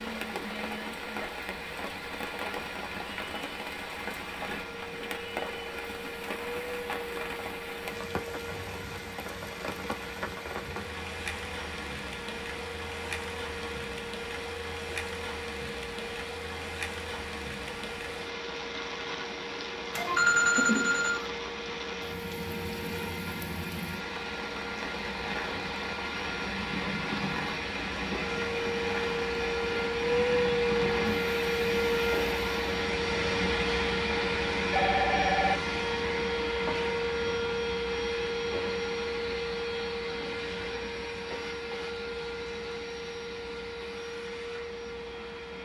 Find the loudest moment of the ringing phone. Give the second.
20 s.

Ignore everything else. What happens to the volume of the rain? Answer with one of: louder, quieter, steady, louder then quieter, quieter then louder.
steady.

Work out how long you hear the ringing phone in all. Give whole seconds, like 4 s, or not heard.
2 s.